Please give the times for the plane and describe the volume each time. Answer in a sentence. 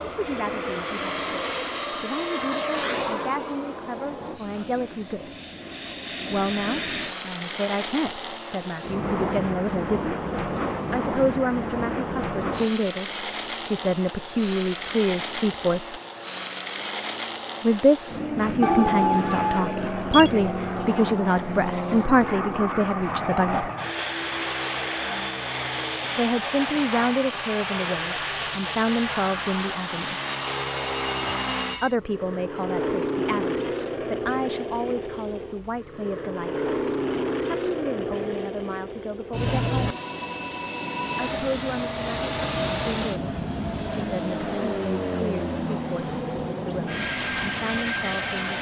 You can hear the plane from 0.0 to 48.5 s, at a steady volume.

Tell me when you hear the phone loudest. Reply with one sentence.
The loudest moment of the phone is at 19 seconds.